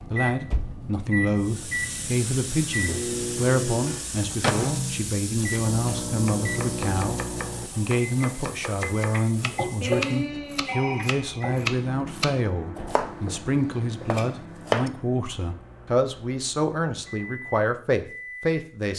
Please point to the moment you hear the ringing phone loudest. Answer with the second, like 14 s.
10 s.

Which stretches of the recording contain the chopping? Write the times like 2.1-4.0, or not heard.
5.2-14.9.